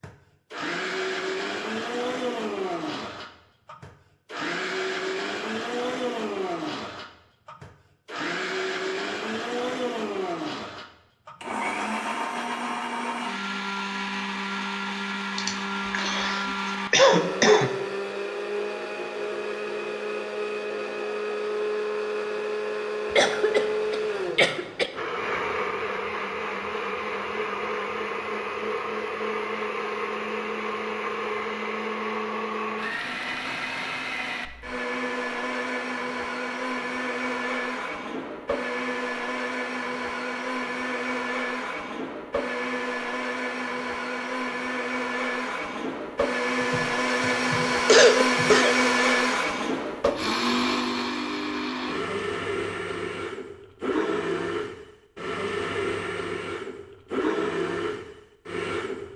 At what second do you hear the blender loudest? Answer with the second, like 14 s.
49 s.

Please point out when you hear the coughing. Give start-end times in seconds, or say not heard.
15.3-17.7, 23.1-24.9, 46.7-48.8.